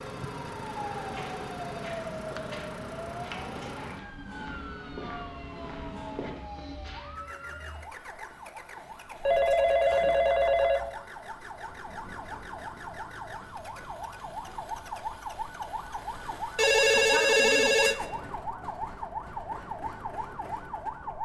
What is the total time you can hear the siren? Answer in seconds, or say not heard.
21 s.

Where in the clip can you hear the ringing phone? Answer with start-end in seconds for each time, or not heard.
0.0-2.4, 9.2-10.9, 16.6-18.1.